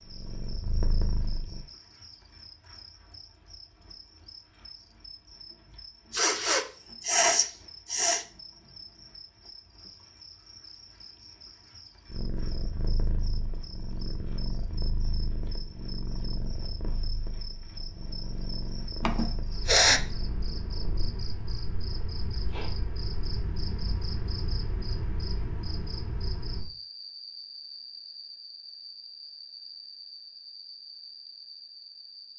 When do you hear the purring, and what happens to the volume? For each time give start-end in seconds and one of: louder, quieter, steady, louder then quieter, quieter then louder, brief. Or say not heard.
0.0-1.6 brief
12.1-21.1 steady.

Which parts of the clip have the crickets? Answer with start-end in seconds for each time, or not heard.
0.0-32.3.